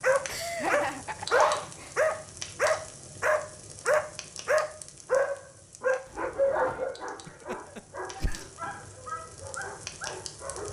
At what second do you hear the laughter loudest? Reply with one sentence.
The loudest moment of the laughter is at 1 second.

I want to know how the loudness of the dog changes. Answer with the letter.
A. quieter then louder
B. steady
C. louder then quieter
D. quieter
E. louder
D.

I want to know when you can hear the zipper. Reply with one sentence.
The zipper can be heard from 1.1 to 1.9 s.